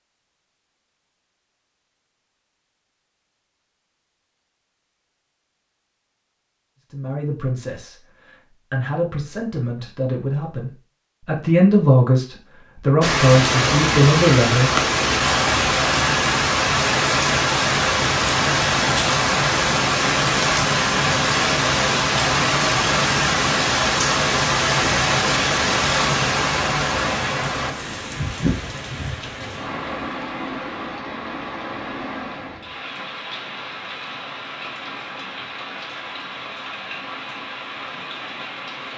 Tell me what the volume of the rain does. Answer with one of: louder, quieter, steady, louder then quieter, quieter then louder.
quieter.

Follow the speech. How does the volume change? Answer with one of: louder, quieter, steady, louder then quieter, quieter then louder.
louder.